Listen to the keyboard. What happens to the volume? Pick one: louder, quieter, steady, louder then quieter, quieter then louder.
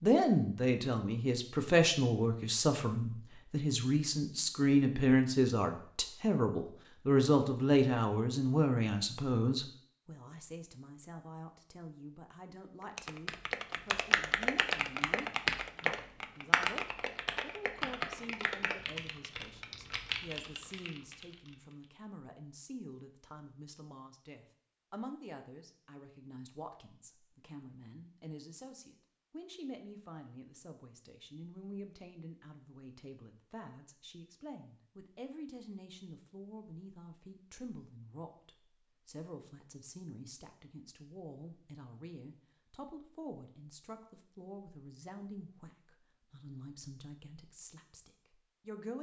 quieter.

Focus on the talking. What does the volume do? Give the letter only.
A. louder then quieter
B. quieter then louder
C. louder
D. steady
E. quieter
E.